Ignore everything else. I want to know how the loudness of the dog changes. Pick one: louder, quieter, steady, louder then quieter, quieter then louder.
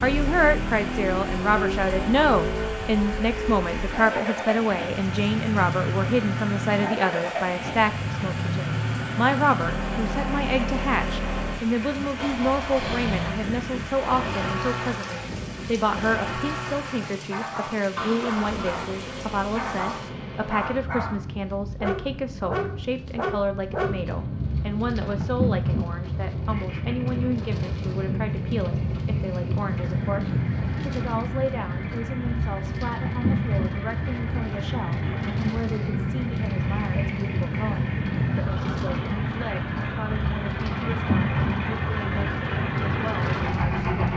louder.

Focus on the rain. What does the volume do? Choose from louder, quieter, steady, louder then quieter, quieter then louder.
louder.